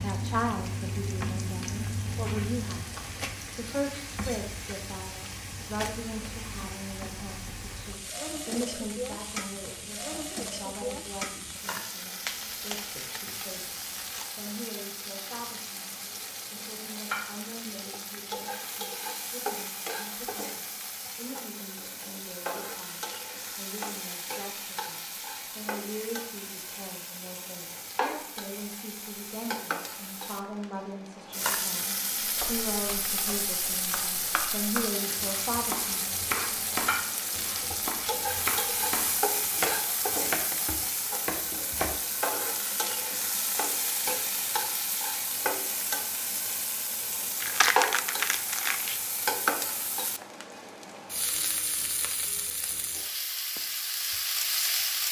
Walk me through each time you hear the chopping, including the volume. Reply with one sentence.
The chopping can be heard from 32.2 to 42.0 s, getting louder.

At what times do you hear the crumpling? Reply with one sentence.
The crumpling can be heard from 12.2 to 14.2 s and from 47.4 to 49.0 s.